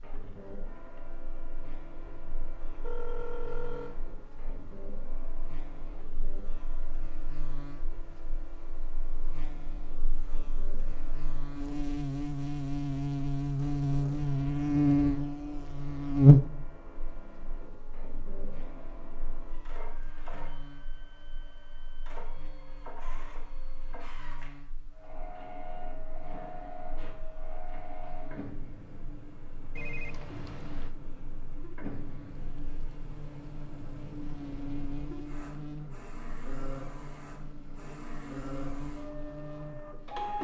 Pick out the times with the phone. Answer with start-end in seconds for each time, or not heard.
2.8-4.0, 29.8-30.9.